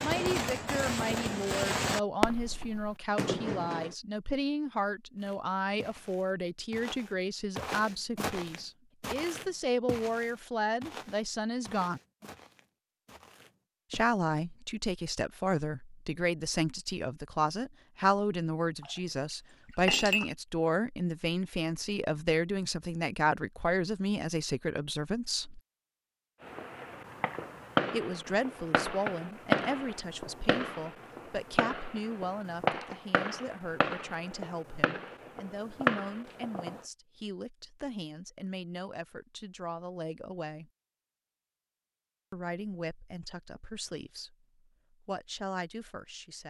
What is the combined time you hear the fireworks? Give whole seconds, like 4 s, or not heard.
14 s.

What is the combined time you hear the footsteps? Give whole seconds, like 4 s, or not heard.
9 s.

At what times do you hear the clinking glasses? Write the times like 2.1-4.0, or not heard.
18.8-20.3.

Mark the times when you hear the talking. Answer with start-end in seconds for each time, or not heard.
0.0-12.0, 13.9-25.6, 27.9-40.7, 42.3-46.4.